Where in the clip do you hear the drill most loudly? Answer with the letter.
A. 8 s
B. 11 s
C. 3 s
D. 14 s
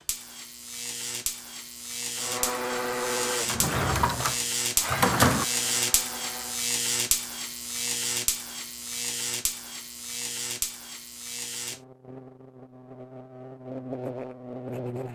C.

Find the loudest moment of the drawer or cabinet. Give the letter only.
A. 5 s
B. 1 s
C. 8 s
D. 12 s
A.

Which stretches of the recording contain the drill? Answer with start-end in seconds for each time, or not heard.
2.1-6.7.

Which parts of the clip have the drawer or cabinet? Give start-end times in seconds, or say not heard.
3.5-5.5.